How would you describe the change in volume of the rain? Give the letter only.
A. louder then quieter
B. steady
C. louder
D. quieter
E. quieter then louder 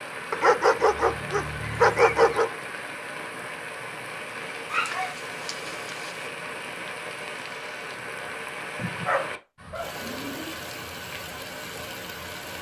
B.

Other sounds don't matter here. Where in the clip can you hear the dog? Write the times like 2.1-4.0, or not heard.
0.3-2.5, 4.7-6.2, 8.8-10.6.